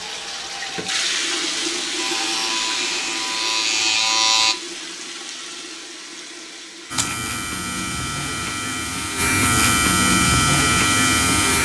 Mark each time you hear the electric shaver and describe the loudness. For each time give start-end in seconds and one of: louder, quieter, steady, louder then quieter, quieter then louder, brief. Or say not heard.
1.9-4.5 brief
6.9-11.6 louder.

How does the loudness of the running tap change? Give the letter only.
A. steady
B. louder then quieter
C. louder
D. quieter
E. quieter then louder
E.